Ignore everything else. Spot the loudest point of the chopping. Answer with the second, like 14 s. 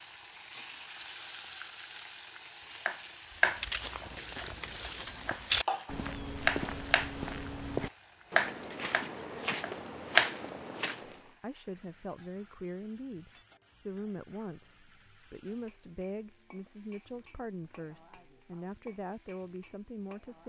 10 s.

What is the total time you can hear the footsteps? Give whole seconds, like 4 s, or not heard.
8 s.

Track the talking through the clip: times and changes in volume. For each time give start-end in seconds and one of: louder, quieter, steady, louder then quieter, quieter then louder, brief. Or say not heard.
11.2-20.4 steady.